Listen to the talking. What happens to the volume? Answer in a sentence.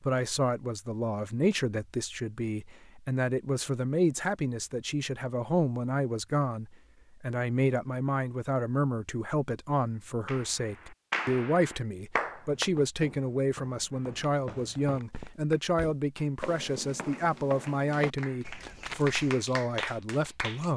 The loudness of the talking stays about the same.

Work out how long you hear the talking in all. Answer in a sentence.
The talking can be heard for 21 seconds in total.